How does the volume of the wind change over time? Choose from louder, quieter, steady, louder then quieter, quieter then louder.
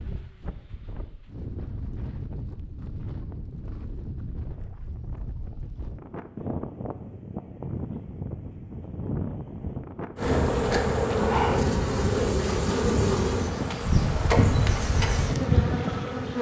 louder.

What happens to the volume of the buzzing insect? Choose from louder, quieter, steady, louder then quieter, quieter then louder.
steady.